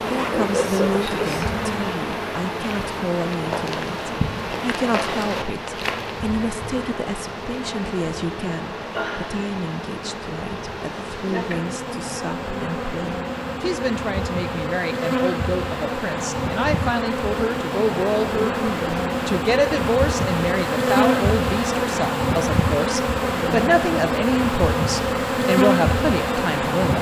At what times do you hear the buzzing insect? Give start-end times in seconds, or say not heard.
0.0-26.9.